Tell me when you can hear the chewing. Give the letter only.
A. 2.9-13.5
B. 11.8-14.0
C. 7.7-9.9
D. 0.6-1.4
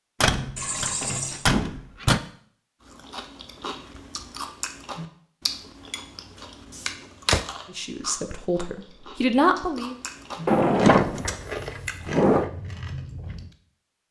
A.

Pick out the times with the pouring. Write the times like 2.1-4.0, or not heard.
0.6-1.4.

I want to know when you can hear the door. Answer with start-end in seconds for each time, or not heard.
0.2-2.2, 6.8-7.5, 10.4-12.5.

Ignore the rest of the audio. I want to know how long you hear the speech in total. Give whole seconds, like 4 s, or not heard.
2 s.